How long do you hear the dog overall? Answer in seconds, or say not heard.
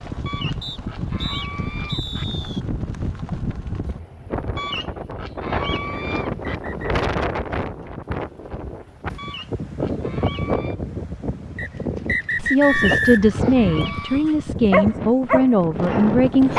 3 s.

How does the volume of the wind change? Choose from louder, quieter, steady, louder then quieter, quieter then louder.
steady.